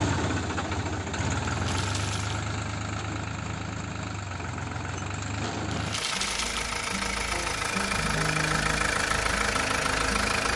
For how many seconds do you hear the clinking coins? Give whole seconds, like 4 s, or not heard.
2 s.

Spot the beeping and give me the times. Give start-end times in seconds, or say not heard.
not heard.